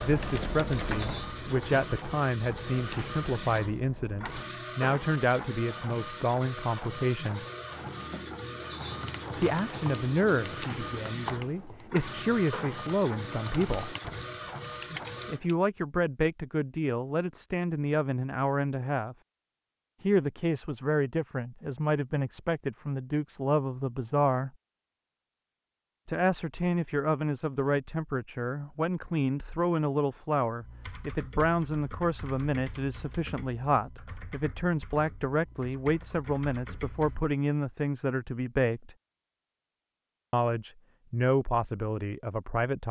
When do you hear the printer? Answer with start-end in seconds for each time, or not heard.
0.0-15.4.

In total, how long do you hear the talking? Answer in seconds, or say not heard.
36 s.